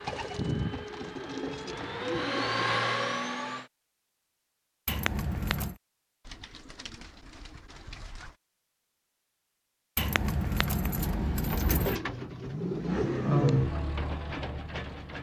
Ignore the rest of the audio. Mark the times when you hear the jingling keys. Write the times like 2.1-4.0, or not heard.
4.8-5.8, 9.9-12.0.